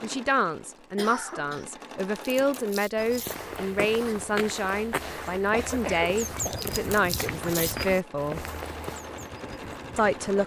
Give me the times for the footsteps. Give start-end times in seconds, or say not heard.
3.0-10.4.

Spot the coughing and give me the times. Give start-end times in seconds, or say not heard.
0.9-1.6, 5.5-6.7.